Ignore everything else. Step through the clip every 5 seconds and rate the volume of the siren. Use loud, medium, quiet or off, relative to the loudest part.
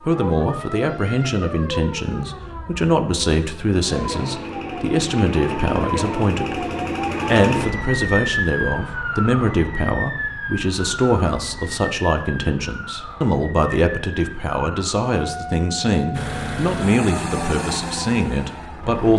medium, loud, medium, medium.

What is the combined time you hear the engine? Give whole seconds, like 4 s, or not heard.
3 s.